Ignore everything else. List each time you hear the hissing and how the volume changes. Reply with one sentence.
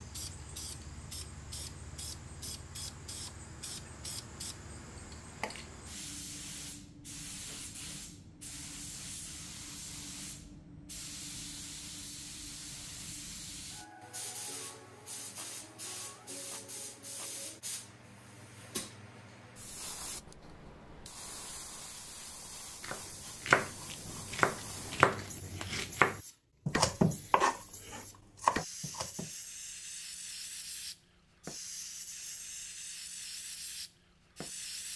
You can hear the hissing from 0.0 to 34.9 s, at a steady volume.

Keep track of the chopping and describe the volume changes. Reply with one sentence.
The volume of the chopping stays about the same.